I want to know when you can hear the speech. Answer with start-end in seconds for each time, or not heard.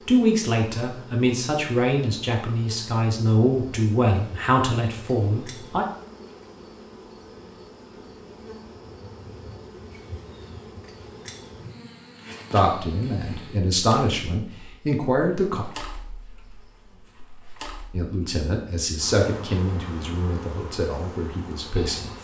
0.1-5.8, 12.5-15.7, 17.9-22.1.